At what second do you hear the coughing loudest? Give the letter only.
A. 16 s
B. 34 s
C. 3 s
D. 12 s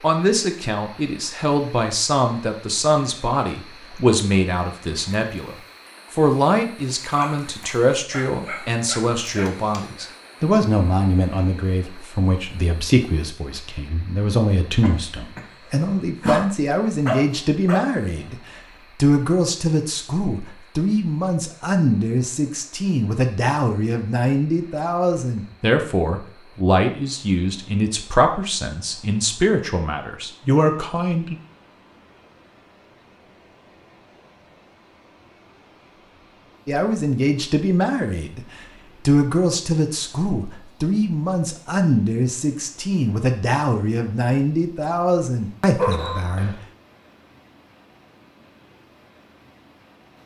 A.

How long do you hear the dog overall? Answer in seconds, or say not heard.
5 s.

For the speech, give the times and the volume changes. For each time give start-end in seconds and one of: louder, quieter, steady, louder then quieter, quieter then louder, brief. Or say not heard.
0.0-31.4 steady
36.6-38.5 brief
39.0-46.5 steady.